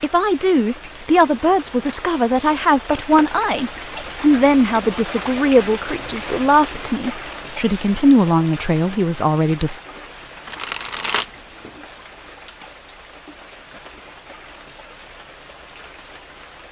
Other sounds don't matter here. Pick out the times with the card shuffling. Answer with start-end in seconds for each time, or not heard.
10.4-11.7.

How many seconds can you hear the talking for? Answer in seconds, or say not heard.
10 s.